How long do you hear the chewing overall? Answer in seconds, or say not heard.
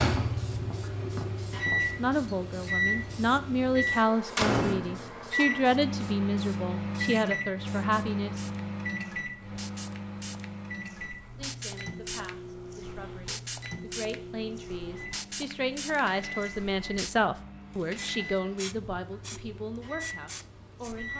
not heard.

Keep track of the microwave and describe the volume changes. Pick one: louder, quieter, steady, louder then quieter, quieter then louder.
quieter.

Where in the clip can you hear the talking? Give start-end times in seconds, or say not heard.
1.9-8.4, 11.3-21.1.